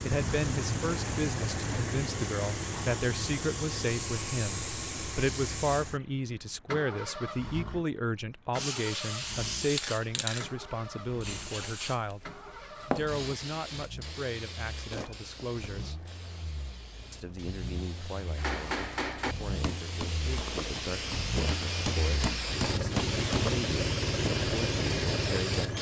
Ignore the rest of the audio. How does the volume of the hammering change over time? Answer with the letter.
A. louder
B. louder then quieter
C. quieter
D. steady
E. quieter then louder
E.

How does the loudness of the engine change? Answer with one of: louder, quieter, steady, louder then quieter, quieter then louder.
quieter then louder.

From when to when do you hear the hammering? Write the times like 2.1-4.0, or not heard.
18.4-23.5.